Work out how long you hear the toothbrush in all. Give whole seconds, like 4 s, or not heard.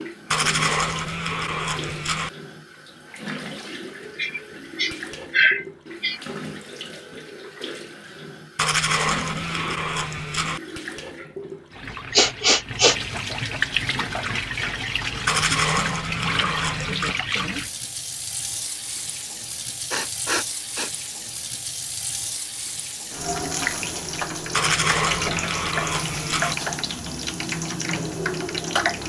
8 s.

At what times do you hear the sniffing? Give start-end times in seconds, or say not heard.
4.2-6.2, 12.2-13.0, 19.9-20.9.